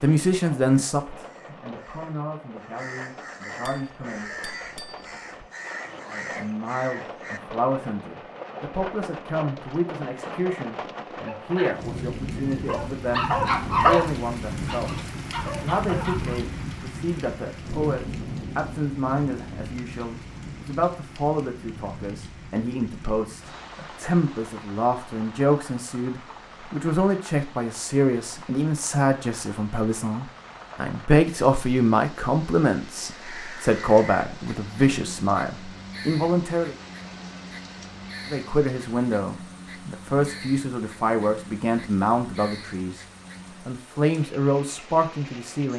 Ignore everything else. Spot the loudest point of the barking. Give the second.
14 s.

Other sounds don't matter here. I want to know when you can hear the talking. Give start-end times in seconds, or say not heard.
0.0-4.3, 6.0-36.8, 38.3-43.0, 43.6-45.7.